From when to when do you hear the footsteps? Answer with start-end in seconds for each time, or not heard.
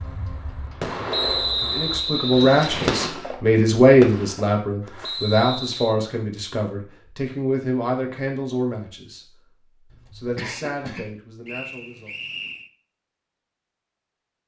not heard.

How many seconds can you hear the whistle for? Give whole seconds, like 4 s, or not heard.
4 s.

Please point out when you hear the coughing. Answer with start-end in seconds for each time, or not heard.
9.9-11.2.